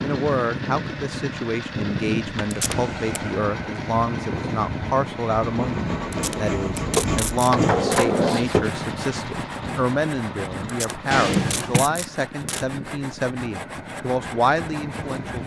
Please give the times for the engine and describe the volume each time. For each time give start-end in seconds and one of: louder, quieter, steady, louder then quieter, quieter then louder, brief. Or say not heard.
0.0-15.4 quieter.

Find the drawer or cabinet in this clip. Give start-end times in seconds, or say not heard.
2.5-3.2, 7.0-8.7, 11.1-11.8.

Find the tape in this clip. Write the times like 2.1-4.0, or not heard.
2.5-3.2, 6.1-8.1, 10.7-12.7.